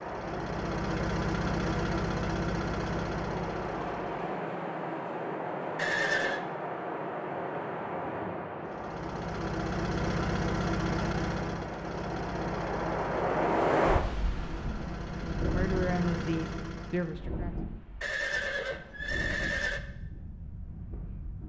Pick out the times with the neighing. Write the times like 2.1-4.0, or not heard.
5.8-6.5, 18.0-19.8.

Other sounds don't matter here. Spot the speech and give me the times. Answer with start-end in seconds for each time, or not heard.
15.4-17.6.